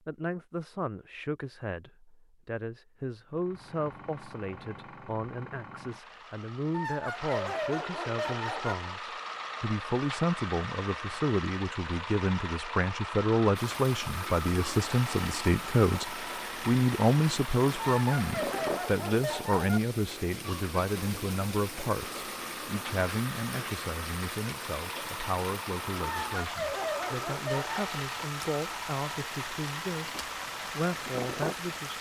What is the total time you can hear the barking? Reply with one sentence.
The barking can be heard for 6 seconds in total.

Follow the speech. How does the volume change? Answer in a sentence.
The loudness of the speech goes up, then down.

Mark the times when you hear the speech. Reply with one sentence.
The speech can be heard from 0.1 to 31.9 s.